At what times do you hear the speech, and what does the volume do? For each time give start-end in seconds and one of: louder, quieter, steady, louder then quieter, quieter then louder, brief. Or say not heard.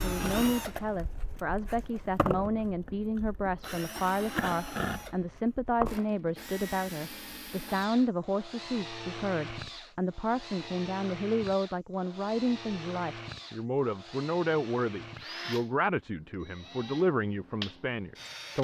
0.0-18.5 steady.